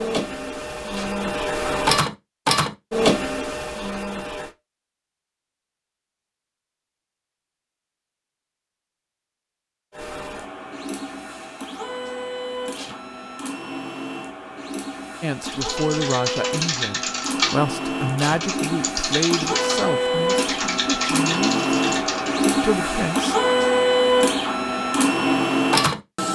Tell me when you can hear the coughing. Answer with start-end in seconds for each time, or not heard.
not heard.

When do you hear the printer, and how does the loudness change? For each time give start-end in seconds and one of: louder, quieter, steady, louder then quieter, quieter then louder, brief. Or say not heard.
0.0-4.5 louder then quieter
9.9-26.3 louder.